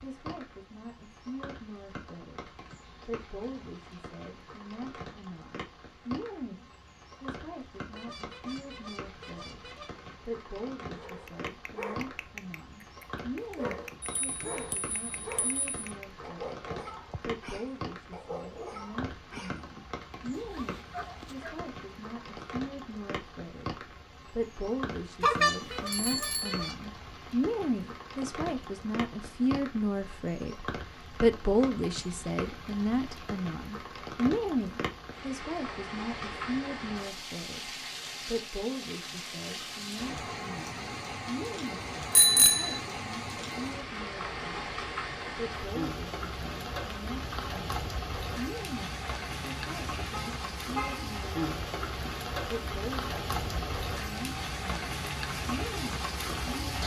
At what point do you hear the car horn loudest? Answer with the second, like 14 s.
51 s.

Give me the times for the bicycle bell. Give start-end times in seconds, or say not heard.
14.0-15.8, 25.2-26.7, 42.1-42.8.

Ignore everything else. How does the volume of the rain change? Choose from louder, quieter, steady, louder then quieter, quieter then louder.
louder.